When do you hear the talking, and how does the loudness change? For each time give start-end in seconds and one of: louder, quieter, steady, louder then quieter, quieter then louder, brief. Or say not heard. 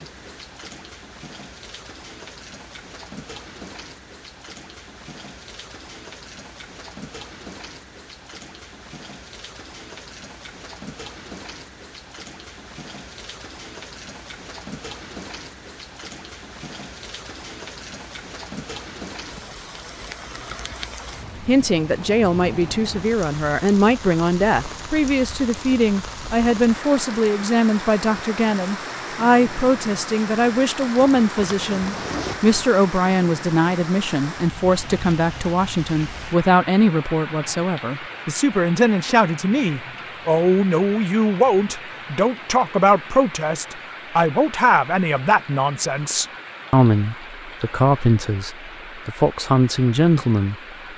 21.4-50.5 steady.